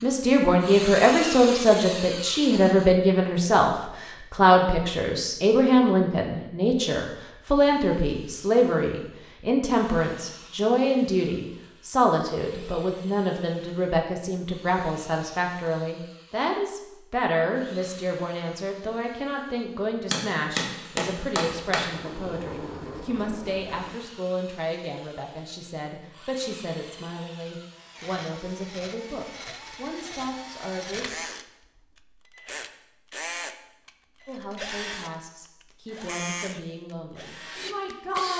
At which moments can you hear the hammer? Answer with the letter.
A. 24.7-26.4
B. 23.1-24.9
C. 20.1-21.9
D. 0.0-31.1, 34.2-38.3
C.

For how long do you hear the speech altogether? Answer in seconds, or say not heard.
35 s.